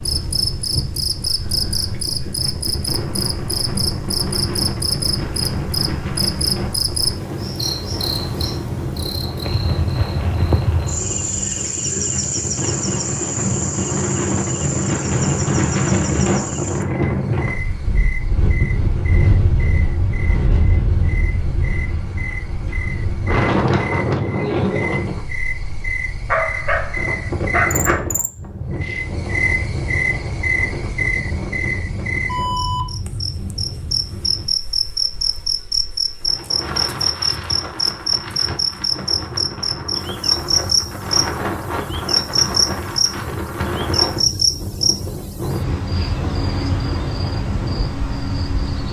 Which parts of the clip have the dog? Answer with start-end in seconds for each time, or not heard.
26.2-28.1.